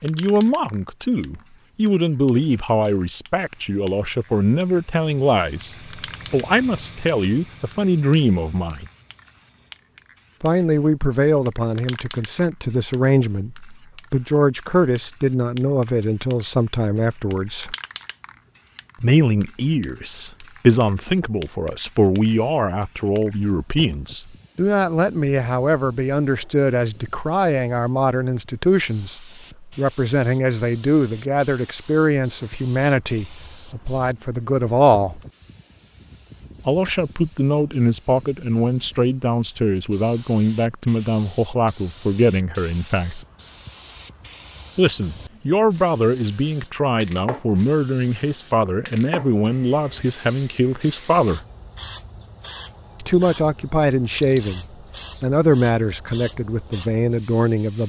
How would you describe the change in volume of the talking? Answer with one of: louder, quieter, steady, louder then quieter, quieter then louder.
steady.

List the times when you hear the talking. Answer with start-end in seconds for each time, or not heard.
0.0-8.8, 10.4-17.8, 19.0-35.2, 36.6-43.2, 44.8-51.4, 53.0-57.8.